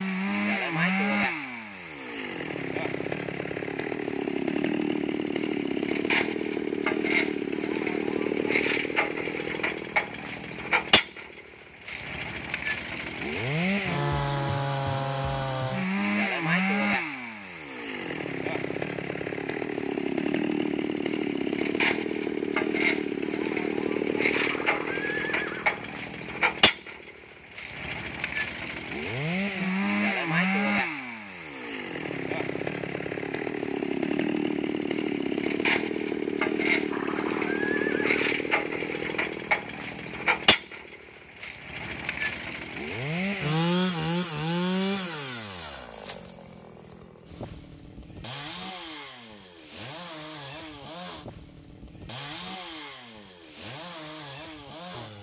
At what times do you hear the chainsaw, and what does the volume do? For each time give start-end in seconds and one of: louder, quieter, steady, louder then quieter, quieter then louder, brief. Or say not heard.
0.0-55.1 quieter.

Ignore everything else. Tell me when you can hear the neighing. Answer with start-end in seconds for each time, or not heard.
24.3-25.9, 36.9-38.2.